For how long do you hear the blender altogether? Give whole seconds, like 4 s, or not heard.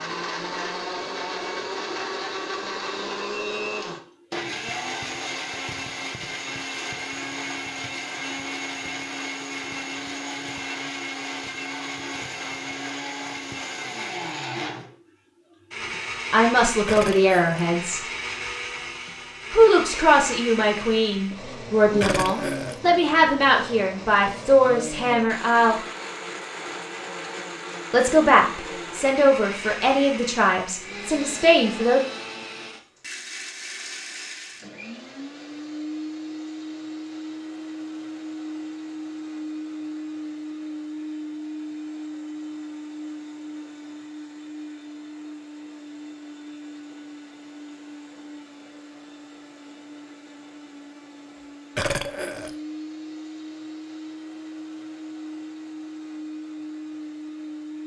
58 s.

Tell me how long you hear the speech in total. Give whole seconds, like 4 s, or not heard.
12 s.